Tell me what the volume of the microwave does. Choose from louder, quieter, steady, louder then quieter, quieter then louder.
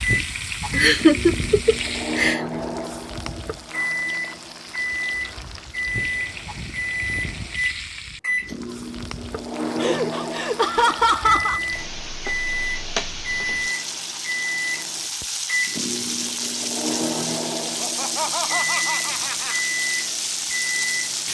steady.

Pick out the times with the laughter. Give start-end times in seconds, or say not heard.
0.8-2.4, 9.8-11.6, 17.6-19.6.